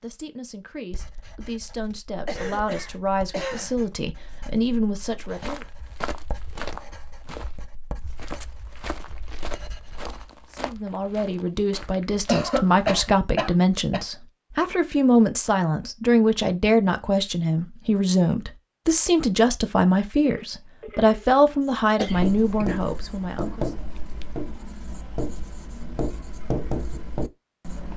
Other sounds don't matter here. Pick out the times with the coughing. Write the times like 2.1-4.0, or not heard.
2.2-3.8, 12.2-14.1, 21.9-22.6.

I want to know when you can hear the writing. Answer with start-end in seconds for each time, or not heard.
0.9-10.2, 22.1-27.9.